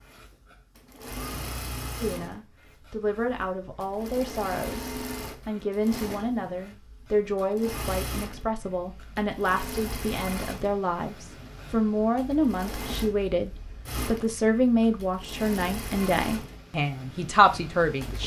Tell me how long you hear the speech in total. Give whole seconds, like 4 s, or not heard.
16 s.